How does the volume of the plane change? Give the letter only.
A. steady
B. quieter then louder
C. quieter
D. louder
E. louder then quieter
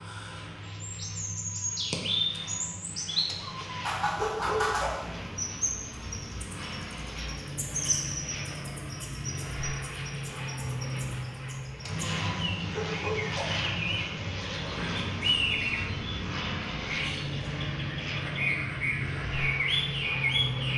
D.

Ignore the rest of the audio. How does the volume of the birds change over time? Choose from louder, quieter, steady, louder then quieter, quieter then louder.
quieter then louder.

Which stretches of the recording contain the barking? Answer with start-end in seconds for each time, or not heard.
3.2-5.0, 11.8-13.7.